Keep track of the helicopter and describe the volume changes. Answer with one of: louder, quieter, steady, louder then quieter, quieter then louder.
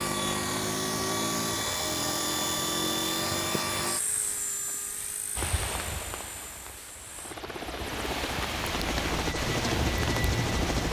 quieter then louder.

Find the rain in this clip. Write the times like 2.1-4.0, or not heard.
5.3-10.8.